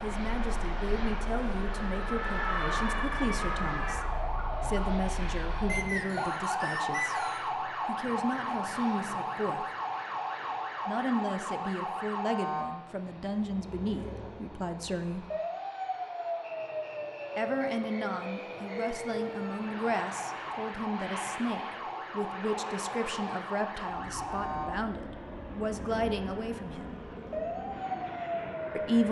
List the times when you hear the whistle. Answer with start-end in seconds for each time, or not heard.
5.7-7.5, 16.4-18.9.